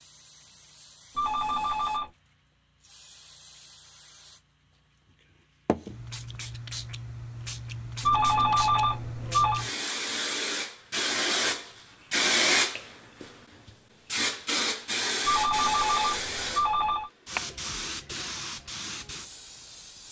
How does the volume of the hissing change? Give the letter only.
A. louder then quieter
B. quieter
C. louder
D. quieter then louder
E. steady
A.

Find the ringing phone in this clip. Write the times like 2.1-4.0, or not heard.
1.1-2.1, 8.0-9.7, 15.2-17.1.